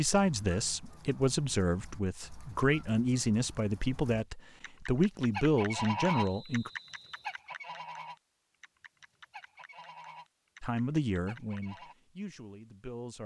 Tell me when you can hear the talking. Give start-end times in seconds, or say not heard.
0.0-6.7, 10.6-13.2.